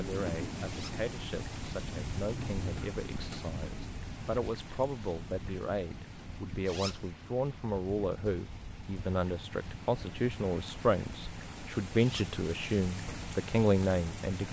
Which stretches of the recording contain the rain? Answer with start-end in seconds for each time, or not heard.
0.0-14.4.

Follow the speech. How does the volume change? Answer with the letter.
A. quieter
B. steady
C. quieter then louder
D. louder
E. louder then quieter
D.